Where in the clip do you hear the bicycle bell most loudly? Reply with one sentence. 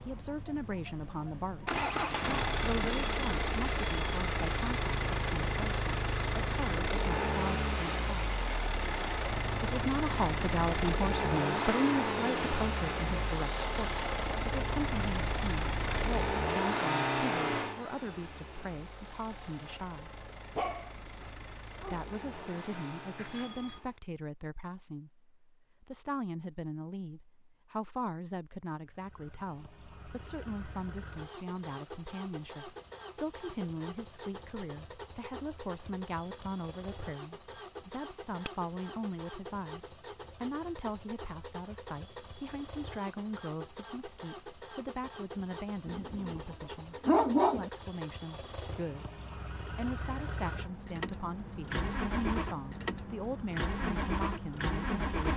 The loudest moment of the bicycle bell is at 39 seconds.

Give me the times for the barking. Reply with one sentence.
You can hear the barking from 20.6 to 22.1 s and from 45.9 to 47.7 s.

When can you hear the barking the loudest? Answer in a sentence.
The loudest moment of the barking is at 47 seconds.